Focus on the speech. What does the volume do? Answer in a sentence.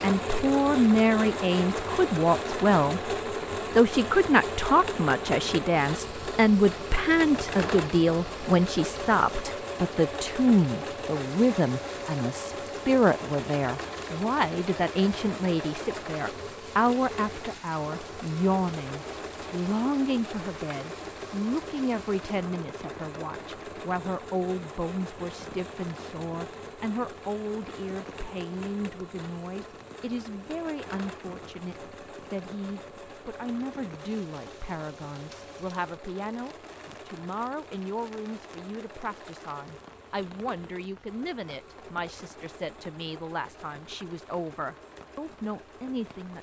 The loudness of the speech goes down.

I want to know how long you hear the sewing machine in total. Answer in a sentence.
The sewing machine can be heard for 46 seconds in total.